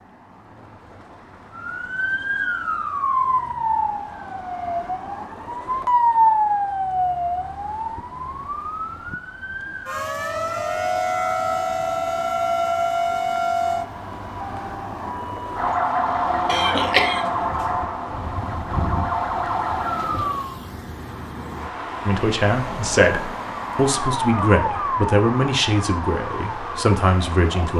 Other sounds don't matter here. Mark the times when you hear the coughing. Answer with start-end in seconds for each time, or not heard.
16.4-17.2.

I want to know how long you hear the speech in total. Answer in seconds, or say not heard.
6 s.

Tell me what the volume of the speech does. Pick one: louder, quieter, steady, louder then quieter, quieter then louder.
steady.